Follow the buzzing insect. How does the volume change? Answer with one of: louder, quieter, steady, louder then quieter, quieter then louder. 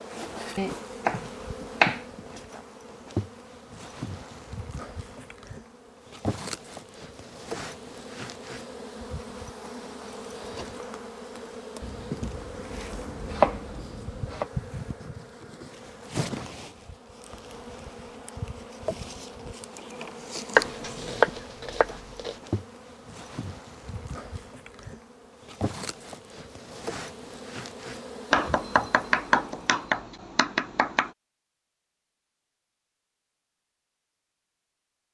steady.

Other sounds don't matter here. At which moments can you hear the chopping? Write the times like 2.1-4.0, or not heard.
0.6-2.2, 11.8-14.4, 20.6-22.4, 28.3-31.1.